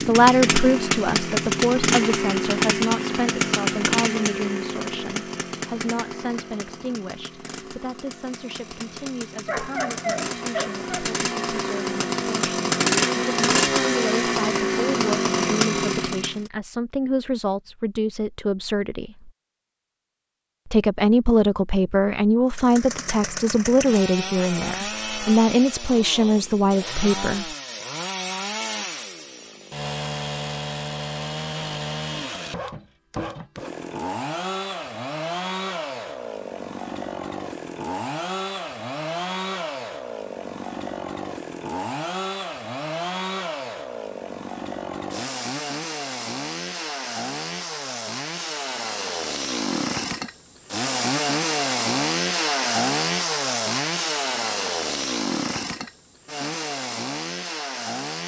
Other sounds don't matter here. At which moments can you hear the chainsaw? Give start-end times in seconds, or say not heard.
0.0-16.5, 22.5-58.2.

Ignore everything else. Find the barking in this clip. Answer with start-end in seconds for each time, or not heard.
9.4-10.9.